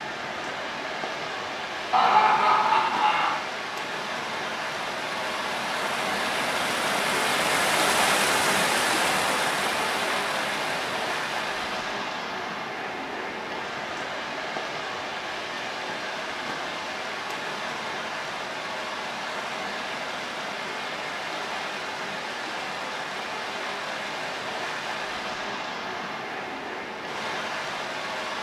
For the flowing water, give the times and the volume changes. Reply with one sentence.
You can hear the flowing water from 0.0 to 28.3 s, getting louder then quieter.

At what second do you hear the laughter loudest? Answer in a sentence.
The volume of the laughter peaks at 2 seconds.